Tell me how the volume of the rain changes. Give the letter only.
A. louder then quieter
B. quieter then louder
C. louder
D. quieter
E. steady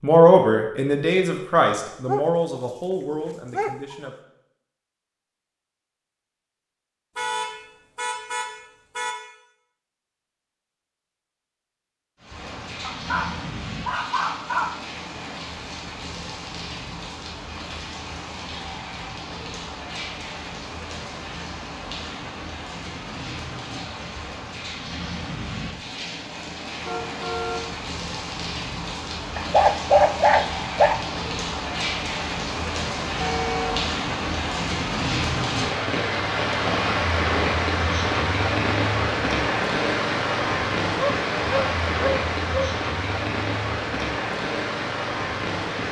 C.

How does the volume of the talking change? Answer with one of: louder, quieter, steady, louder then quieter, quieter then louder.
quieter.